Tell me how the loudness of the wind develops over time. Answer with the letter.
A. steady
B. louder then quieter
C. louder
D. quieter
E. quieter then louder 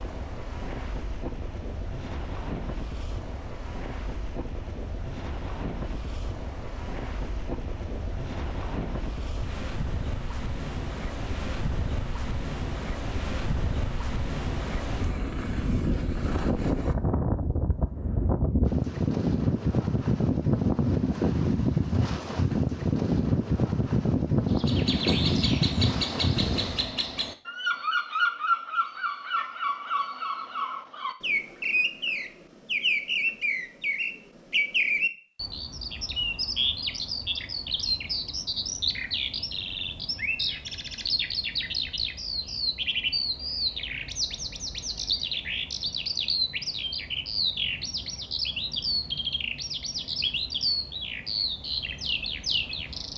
C.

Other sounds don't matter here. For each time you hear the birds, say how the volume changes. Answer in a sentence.
The birds can be heard from 24.5 to 53.1 s, at a steady volume.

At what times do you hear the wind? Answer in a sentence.
You can hear the wind from 0.0 to 26.9 s.